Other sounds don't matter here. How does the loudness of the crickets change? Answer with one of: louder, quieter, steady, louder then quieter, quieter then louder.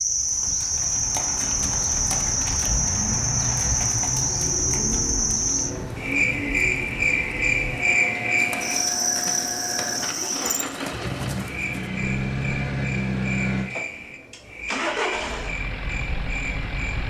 quieter.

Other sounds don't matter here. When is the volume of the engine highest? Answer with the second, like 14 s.
13 s.